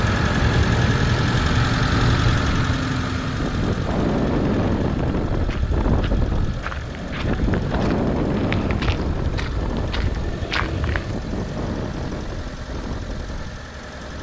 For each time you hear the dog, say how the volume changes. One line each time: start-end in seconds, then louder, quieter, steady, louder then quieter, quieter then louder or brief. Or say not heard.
not heard.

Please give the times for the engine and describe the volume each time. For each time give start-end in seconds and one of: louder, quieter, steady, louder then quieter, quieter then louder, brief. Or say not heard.
0.0-14.1 quieter.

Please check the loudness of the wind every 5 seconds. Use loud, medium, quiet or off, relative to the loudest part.
loud, loud, medium.